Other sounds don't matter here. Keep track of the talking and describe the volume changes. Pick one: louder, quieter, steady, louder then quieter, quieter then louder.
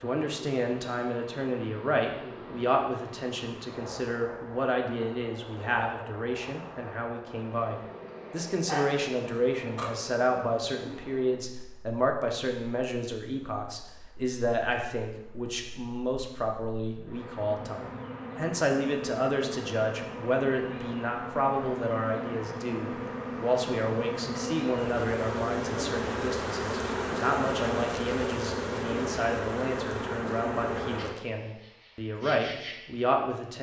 steady.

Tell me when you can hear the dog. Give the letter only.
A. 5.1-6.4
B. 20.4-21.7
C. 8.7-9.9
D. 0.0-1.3
C.